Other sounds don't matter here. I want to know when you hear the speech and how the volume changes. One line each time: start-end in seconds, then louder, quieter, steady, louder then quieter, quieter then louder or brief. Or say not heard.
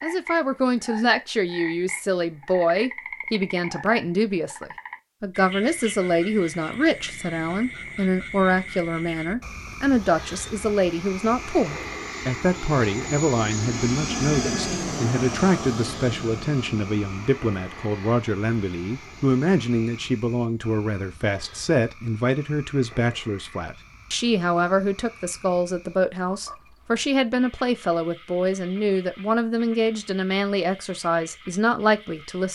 0.0-32.5 steady.